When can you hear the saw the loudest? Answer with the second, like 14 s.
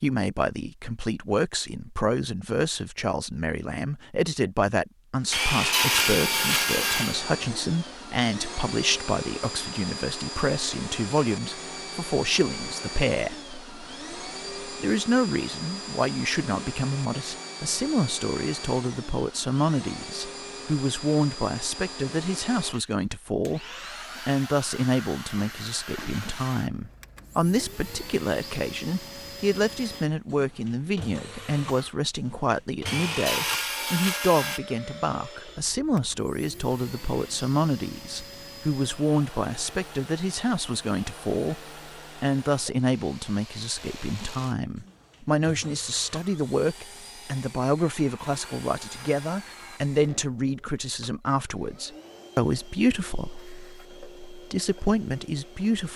6 s.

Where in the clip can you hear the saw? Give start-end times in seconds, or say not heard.
5.3-7.2, 32.9-34.6, 47.8-49.8.